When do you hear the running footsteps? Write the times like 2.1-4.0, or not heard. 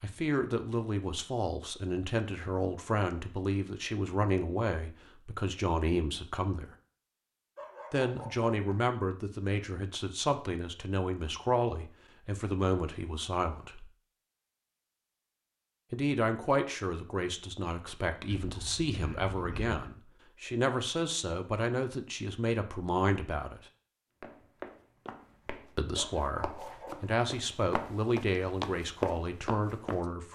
24.2-30.1.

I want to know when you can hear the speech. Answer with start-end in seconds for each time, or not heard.
0.0-6.7, 7.9-13.9, 15.9-23.6, 25.8-30.3.